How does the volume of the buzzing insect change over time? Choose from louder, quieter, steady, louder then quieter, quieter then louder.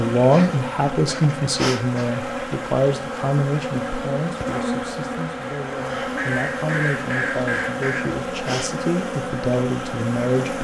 steady.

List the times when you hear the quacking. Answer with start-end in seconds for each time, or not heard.
0.3-2.2, 6.2-8.2.